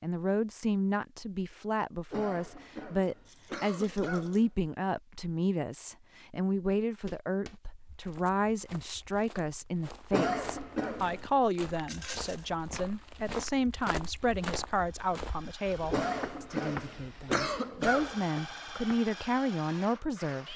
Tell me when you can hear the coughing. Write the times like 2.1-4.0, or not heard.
2.1-4.7, 10.1-11.3, 15.9-18.2.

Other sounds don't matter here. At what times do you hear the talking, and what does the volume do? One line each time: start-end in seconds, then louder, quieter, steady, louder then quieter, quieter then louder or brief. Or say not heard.
0.0-20.5 steady.